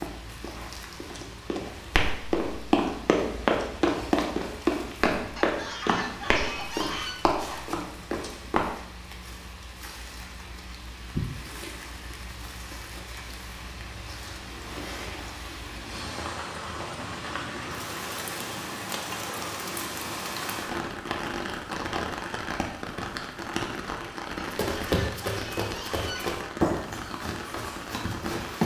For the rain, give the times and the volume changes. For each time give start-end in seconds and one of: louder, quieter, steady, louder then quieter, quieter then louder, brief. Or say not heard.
0.0-28.6 louder.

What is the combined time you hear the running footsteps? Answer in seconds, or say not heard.
13 s.